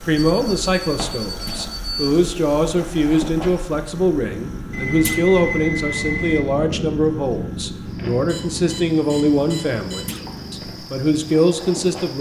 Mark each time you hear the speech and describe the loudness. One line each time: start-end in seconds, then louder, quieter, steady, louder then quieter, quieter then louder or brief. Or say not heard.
0.0-12.1 steady.